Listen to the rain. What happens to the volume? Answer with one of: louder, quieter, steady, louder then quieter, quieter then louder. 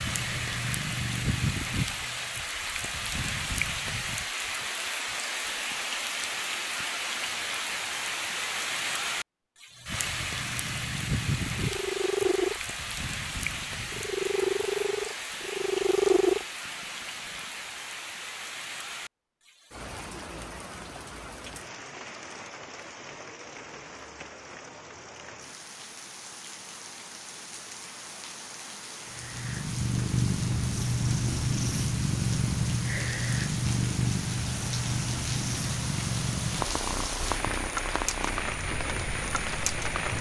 quieter then louder.